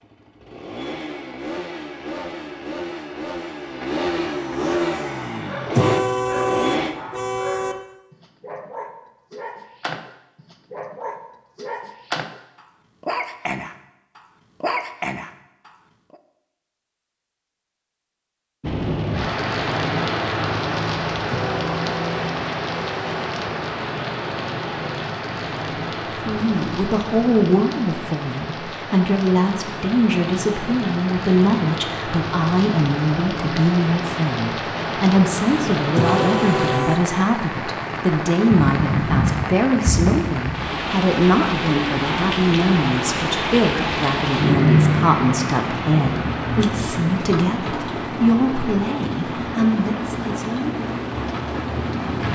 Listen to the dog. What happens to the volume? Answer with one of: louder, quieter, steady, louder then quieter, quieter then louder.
louder.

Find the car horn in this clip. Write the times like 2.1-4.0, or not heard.
5.8-7.8, 21.3-23.1, 36.0-37.0.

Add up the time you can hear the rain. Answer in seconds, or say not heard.
34 s.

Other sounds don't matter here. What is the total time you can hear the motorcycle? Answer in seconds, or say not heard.
7 s.